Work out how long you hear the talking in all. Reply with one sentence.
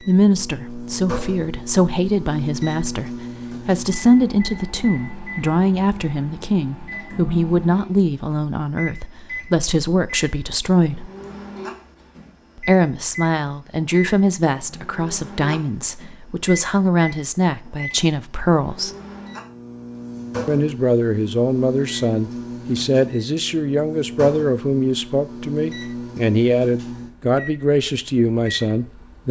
You can hear the talking for 26 seconds altogether.